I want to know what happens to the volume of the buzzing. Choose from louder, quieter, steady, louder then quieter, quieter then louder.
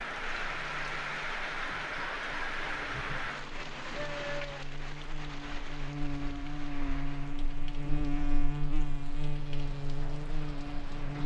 louder.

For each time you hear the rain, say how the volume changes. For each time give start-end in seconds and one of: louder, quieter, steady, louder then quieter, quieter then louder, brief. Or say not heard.
0.0-11.2 quieter.